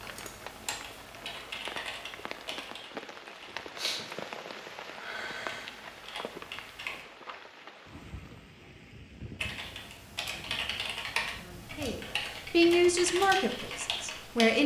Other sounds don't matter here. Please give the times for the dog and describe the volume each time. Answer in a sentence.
You can't hear the dog here.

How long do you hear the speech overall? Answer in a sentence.
You can hear the speech for 3 seconds altogether.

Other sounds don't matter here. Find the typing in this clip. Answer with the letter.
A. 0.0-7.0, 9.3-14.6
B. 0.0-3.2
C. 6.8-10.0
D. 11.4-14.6
A.